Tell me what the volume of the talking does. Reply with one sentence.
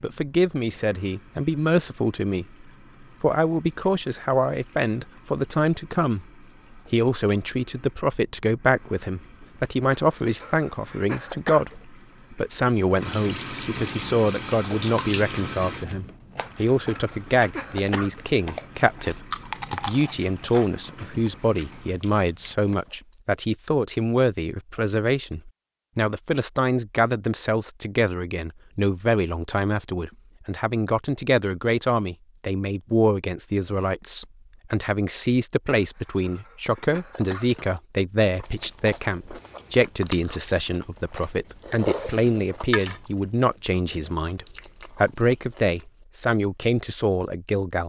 The loudness of the talking stays about the same.